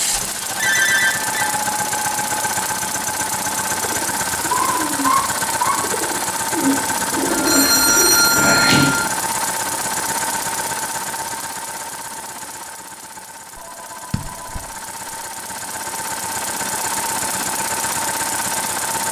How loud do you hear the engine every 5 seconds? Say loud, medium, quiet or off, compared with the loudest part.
loud, loud, medium, loud.